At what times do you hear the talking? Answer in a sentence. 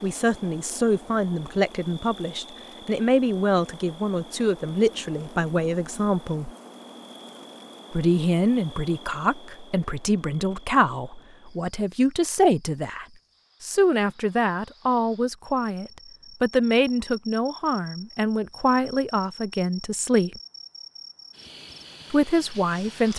You can hear the talking from 0.0 to 6.5 s, from 7.9 to 20.4 s and from 22.1 to 23.1 s.